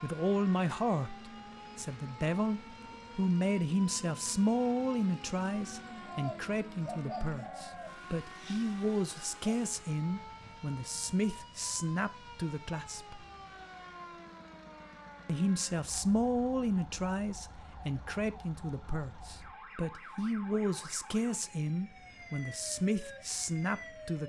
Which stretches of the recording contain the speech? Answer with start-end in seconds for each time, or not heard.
0.0-13.2, 15.2-24.2.